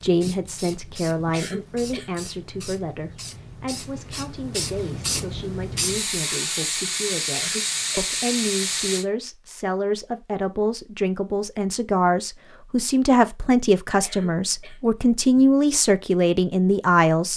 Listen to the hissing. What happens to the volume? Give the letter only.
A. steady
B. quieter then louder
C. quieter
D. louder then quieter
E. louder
E.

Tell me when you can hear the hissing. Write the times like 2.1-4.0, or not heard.
0.0-9.1.